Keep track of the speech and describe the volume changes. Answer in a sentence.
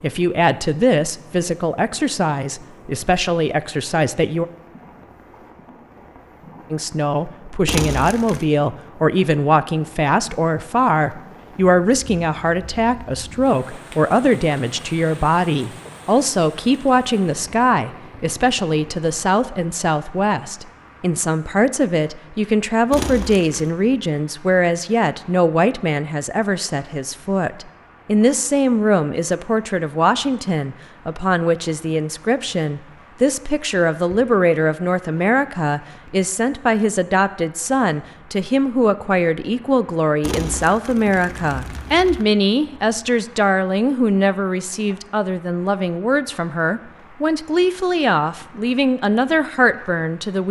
The volume of the speech stays about the same.